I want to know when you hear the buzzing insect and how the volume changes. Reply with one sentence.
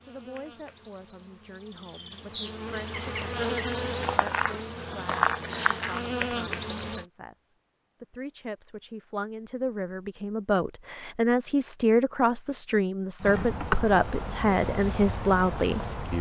The buzzing insect can be heard from 0.0 to 7.0 s, getting louder; and briefly from 13.2 to 16.1 s.